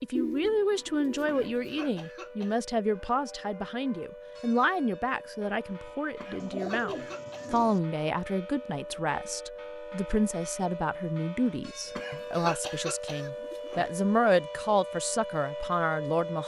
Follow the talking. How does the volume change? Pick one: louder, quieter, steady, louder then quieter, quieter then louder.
steady.